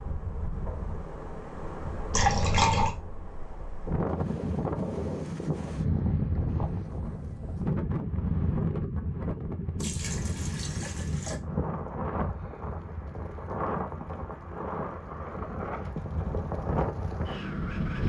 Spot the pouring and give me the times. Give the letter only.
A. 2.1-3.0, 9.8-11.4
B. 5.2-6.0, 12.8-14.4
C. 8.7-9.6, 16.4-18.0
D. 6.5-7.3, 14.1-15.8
A.